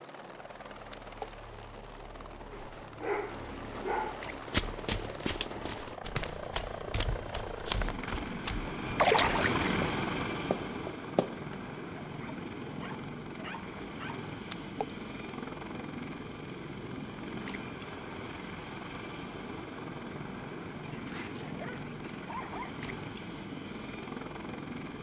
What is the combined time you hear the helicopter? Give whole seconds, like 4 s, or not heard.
25 s.